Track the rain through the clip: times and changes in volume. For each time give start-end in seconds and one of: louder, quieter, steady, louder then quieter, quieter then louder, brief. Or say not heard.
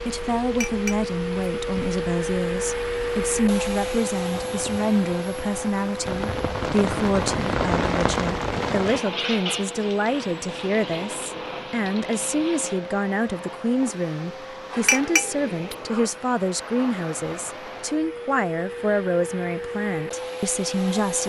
0.0-12.8 louder then quieter.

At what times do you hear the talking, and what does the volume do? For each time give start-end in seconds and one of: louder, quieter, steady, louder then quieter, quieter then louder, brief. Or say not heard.
0.1-21.2 steady.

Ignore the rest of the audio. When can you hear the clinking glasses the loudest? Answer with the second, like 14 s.
15 s.